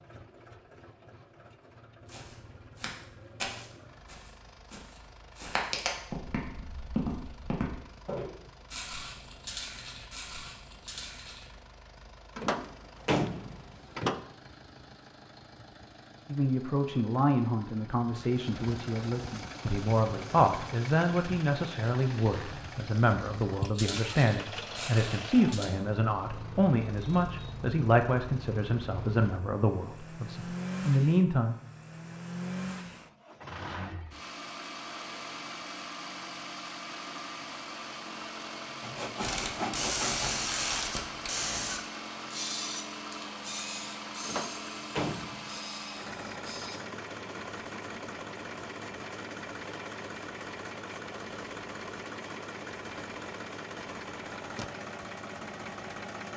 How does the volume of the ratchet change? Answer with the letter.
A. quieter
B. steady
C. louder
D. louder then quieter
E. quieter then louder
A.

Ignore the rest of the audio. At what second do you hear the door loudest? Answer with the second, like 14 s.
13 s.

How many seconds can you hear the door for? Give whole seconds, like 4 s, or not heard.
3 s.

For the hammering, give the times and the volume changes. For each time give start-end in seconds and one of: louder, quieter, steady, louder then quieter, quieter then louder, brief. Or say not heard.
not heard.